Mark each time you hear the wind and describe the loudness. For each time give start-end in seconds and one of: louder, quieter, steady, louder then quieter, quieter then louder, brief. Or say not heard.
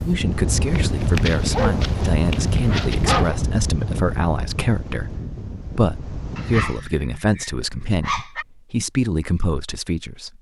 0.0-6.8 quieter.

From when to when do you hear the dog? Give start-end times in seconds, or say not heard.
0.8-3.4, 6.3-8.4.